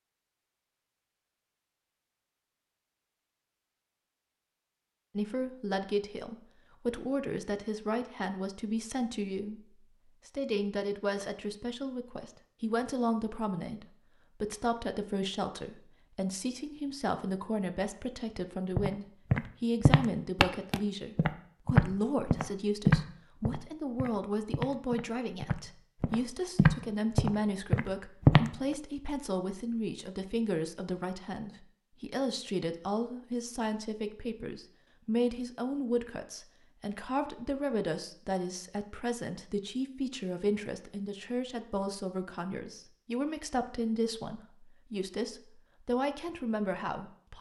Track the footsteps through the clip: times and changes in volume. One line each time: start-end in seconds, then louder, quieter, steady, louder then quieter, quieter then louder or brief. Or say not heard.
18.8-28.8 quieter then louder.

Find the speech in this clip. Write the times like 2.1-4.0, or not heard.
5.2-47.3.